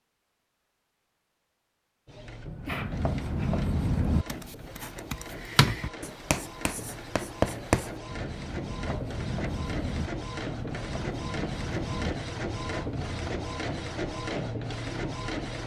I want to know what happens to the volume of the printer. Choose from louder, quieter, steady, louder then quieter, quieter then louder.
louder.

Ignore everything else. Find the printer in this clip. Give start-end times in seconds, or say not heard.
2.0-15.6.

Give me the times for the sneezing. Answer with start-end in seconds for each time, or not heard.
2.6-3.6.